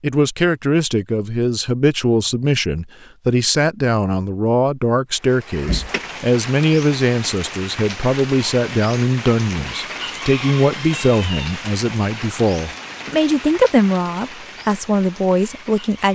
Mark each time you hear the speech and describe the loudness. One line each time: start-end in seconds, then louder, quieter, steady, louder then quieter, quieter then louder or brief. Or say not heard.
0.0-16.1 steady.